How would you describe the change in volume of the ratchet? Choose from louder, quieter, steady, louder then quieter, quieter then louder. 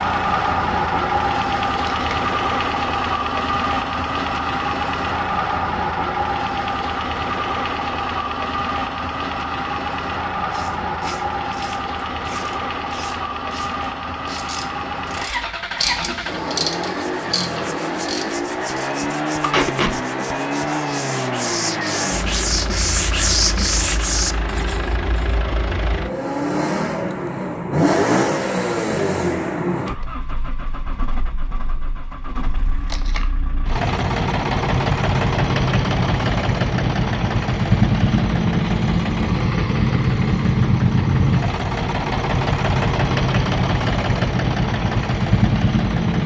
louder then quieter.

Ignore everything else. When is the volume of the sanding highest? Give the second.
23 s.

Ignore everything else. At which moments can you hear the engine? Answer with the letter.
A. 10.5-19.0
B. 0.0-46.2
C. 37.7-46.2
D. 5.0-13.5
B.